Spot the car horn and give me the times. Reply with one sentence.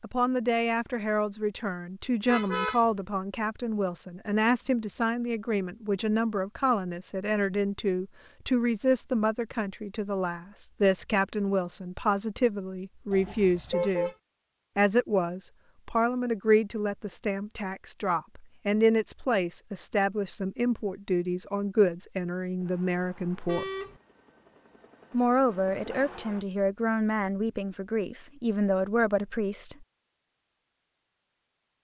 You can hear the car horn from 2.2 to 2.8 s, from 13.1 to 14.2 s and from 23.4 to 24.0 s.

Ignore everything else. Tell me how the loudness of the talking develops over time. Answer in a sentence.
The volume of the talking stays about the same.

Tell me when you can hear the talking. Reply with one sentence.
The talking can be heard from 0.0 to 14.1 s, from 14.8 to 23.6 s and from 25.1 to 29.9 s.